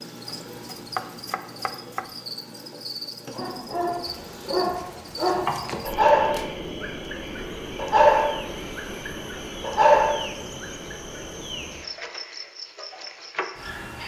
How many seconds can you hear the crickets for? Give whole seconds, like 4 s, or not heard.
14 s.